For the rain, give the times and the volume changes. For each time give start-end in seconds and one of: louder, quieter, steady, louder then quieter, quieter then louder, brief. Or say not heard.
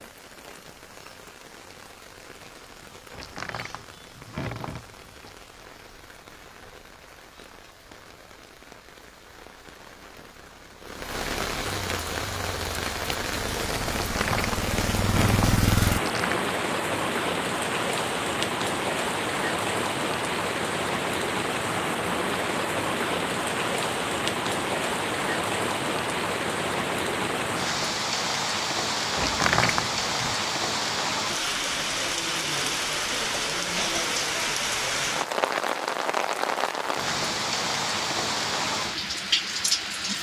0.0-40.1 louder.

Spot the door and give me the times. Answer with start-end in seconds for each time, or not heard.
3.1-5.3, 13.9-16.4, 29.1-30.4.